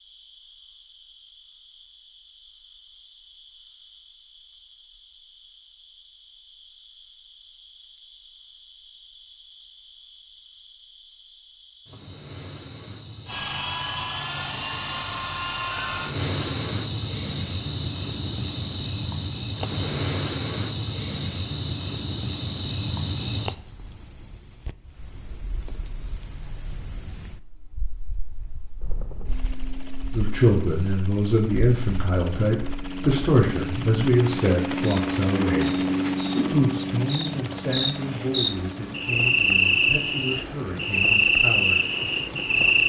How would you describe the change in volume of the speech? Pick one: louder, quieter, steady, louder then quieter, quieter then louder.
quieter.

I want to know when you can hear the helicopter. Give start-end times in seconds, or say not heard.
13.2-16.8, 28.8-42.8.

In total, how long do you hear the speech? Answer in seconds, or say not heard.
11 s.